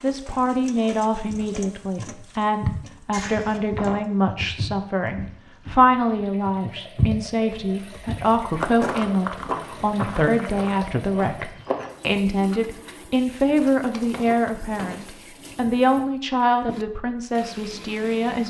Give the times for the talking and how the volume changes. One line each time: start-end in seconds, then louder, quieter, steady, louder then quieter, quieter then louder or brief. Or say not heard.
0.0-18.4 steady.